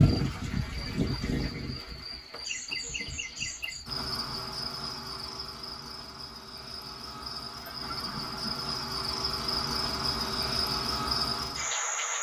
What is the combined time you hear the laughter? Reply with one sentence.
The laughter can be heard for 3 seconds in total.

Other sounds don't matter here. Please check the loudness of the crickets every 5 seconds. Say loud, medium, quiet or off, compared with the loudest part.
loud, medium, loud.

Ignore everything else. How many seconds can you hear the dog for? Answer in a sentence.
The dog can't be heard in this clip.